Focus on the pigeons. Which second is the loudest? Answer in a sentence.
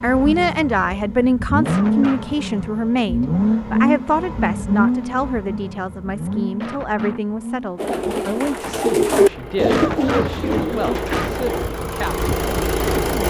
The loudest moment of the pigeons is at 9 seconds.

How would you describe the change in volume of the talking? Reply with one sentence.
The loudness of the talking goes down.